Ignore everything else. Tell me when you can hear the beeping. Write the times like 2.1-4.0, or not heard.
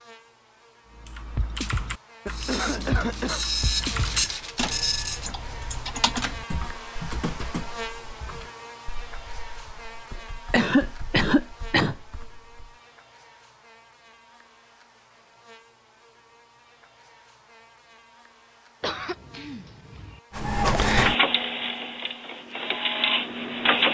not heard.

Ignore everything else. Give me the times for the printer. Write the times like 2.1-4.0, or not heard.
2.2-5.3, 20.4-23.9.